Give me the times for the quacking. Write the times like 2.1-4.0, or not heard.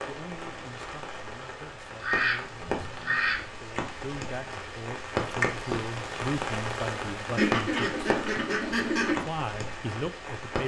2.0-3.5, 7.3-9.2.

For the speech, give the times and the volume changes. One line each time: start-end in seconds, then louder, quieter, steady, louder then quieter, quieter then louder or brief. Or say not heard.
0.1-7.9 louder
9.2-10.6 brief.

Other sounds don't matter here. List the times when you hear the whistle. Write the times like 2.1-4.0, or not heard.
not heard.